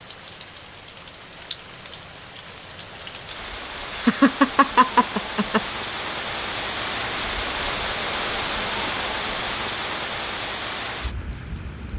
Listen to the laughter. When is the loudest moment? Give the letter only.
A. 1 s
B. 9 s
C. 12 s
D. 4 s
D.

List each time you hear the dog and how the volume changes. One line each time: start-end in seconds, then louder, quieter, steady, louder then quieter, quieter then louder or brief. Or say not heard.
not heard.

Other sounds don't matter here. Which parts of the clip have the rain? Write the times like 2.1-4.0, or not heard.
0.0-11.9.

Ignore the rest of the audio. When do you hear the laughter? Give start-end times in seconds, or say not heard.
3.9-5.6.